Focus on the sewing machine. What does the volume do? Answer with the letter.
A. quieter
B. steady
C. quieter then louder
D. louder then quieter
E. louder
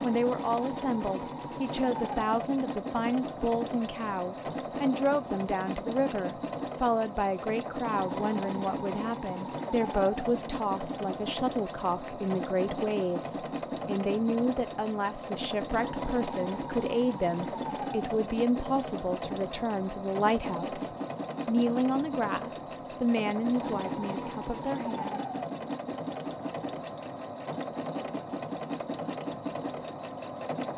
B.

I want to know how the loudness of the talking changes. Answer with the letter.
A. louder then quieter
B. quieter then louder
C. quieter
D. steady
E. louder
D.